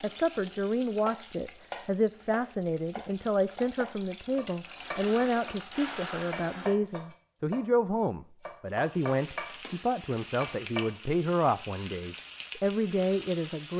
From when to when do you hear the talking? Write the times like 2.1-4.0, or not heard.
0.0-13.7.